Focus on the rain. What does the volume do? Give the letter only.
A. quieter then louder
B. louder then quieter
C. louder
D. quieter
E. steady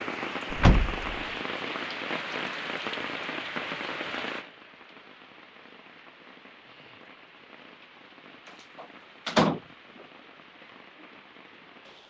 D.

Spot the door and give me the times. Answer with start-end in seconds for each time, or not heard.
0.5-1.1, 8.8-9.6.